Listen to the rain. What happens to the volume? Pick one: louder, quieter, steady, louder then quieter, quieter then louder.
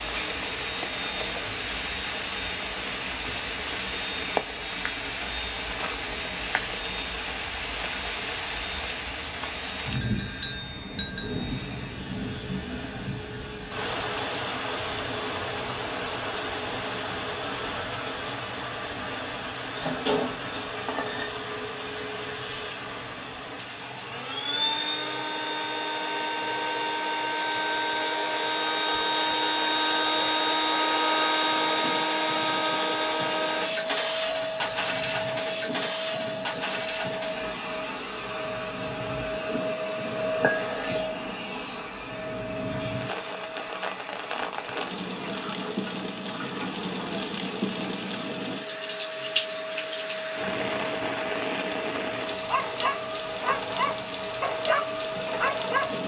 quieter then louder.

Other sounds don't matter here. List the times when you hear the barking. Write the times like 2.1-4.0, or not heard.
52.5-56.0.